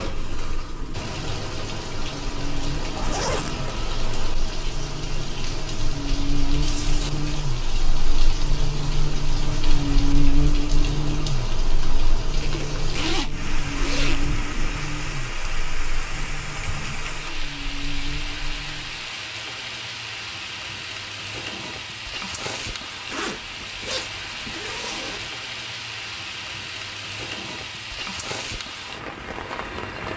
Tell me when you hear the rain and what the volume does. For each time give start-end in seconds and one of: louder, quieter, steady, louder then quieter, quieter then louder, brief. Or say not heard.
0.0-30.1 steady.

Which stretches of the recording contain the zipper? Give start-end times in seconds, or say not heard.
3.0-3.9, 12.4-14.2, 23.1-25.3.